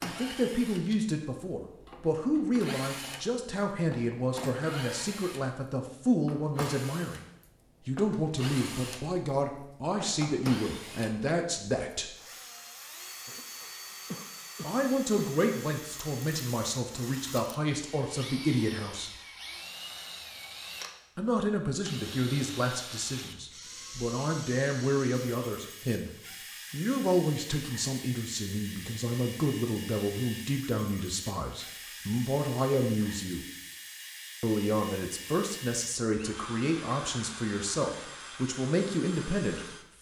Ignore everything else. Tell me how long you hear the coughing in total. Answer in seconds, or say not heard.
2 s.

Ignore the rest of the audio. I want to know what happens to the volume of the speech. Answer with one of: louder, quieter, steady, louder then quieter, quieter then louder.
steady.